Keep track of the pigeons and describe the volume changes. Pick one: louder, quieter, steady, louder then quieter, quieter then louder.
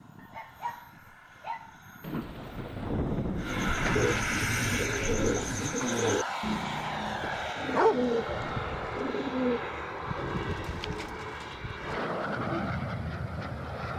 quieter.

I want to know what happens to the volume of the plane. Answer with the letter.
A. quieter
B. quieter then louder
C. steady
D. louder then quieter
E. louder
E.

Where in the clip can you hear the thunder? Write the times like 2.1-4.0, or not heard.
2.0-5.8.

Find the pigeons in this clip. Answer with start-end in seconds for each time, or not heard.
3.4-12.7.